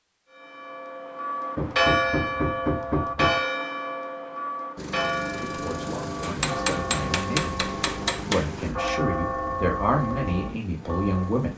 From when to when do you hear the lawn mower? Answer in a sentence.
You can hear the lawn mower from 4.8 to 11.5 s.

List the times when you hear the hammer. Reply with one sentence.
You can hear the hammer from 1.6 to 3.4 s and from 6.2 to 8.9 s.